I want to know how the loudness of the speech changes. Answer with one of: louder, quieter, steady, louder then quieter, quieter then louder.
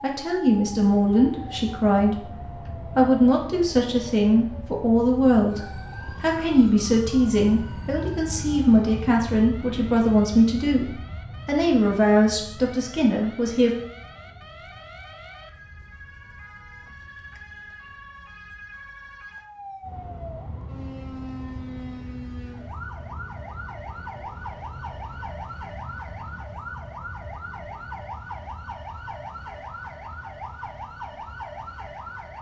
steady.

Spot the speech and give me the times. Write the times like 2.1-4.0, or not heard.
0.0-13.7.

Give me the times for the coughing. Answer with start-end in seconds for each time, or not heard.
not heard.